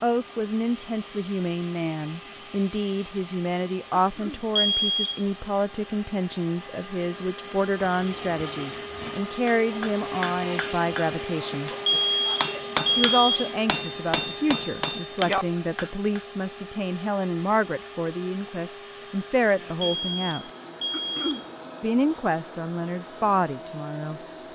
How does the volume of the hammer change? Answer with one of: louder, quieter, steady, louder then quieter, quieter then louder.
quieter then louder.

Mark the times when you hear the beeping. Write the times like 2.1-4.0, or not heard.
4.5-5.2, 11.8-13.5, 19.8-21.4.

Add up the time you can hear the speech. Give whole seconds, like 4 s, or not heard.
22 s.